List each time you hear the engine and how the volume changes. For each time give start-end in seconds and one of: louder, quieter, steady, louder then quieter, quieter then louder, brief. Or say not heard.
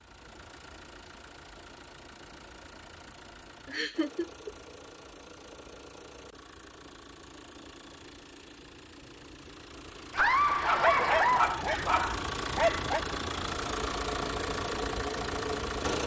0.0-16.0 louder.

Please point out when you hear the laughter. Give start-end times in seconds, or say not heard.
3.6-4.5, 10.2-11.6.